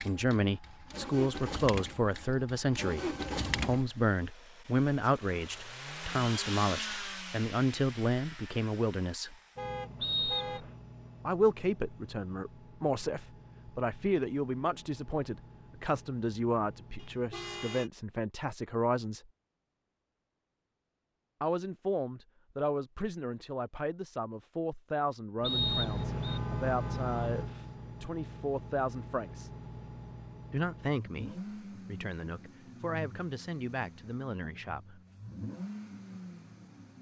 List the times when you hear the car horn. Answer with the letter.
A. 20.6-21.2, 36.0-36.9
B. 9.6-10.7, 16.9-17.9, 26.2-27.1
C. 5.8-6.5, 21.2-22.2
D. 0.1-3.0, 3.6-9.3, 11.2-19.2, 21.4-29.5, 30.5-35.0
B.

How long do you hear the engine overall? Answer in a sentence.
The engine can be heard for 29 seconds in total.